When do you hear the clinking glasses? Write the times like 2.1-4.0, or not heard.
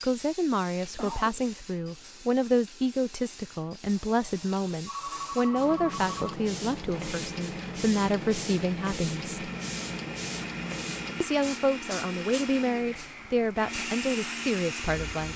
not heard.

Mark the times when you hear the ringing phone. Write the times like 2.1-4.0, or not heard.
4.8-6.3.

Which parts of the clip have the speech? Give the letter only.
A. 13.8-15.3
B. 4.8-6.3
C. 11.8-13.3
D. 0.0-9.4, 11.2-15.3
D.